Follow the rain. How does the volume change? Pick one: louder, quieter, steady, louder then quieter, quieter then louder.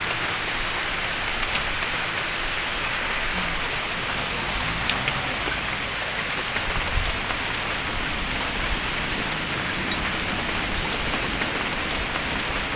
steady.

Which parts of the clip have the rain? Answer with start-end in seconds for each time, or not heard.
0.0-12.7.